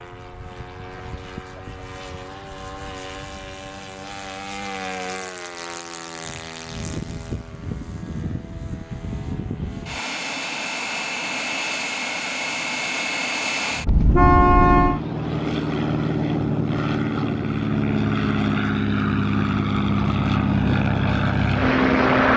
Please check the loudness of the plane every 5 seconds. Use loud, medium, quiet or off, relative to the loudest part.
quiet, quiet, medium, loud, loud.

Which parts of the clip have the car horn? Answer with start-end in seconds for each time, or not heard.
13.8-15.0.